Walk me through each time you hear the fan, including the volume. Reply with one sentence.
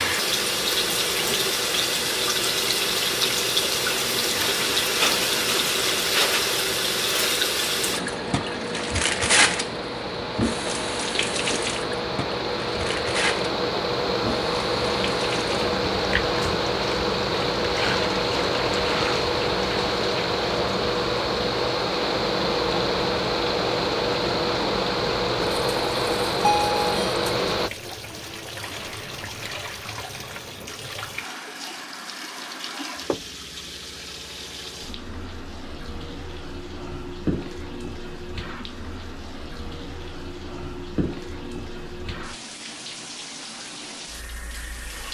The fan can be heard from 0.0 to 27.7 s, getting louder.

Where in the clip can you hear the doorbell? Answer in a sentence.
You can hear the doorbell from 26.4 to 27.1 s.